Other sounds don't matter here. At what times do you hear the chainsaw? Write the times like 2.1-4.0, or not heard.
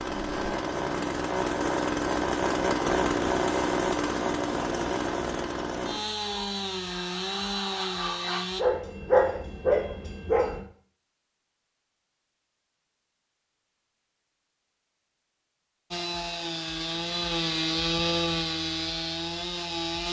0.0-8.7, 15.9-20.0.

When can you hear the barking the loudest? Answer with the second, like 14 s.
9 s.